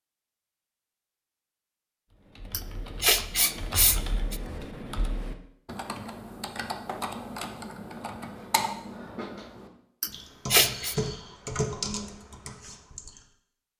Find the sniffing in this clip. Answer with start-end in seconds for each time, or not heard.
2.5-4.4, 10.0-10.9.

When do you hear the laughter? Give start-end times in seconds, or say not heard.
not heard.